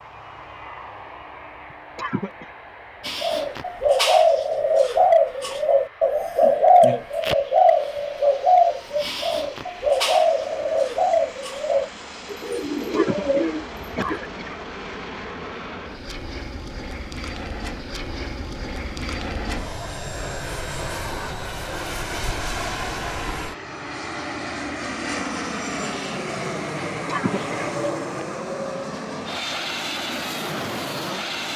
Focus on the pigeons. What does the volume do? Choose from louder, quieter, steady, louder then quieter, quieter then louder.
quieter.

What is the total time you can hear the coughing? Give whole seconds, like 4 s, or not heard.
3 s.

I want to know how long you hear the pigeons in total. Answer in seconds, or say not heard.
11 s.